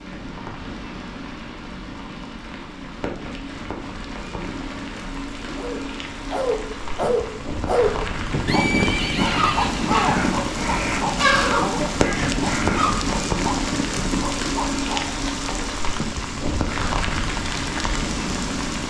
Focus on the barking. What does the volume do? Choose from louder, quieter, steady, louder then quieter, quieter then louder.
quieter.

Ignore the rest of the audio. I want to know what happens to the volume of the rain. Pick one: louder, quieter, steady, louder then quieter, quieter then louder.
louder.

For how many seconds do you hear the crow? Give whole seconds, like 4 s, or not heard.
4 s.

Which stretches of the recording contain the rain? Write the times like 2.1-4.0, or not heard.
0.0-18.8.